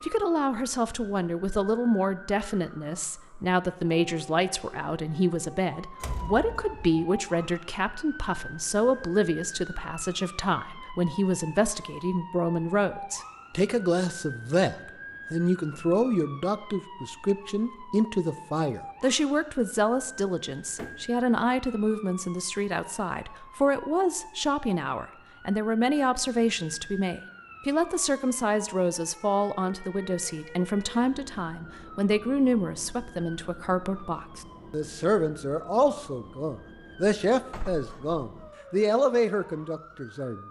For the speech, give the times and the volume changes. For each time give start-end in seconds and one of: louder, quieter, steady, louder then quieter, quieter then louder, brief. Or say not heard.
0.0-40.4 steady.